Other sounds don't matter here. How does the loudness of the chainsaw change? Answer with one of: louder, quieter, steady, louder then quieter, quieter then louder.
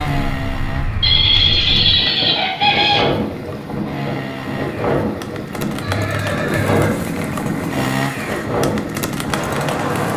louder.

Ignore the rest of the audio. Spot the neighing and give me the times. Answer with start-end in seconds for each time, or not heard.
1.0-3.0, 5.8-6.9.